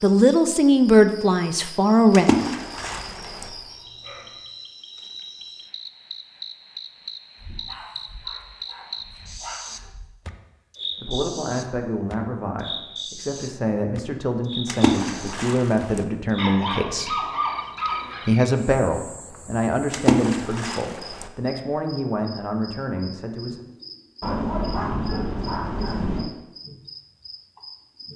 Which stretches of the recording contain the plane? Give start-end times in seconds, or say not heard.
not heard.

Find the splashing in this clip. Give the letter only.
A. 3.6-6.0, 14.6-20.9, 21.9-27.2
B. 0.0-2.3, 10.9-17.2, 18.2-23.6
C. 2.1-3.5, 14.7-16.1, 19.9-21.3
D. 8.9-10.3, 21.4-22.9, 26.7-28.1
C.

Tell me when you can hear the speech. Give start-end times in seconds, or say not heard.
0.0-2.3, 10.9-17.2, 18.2-23.6.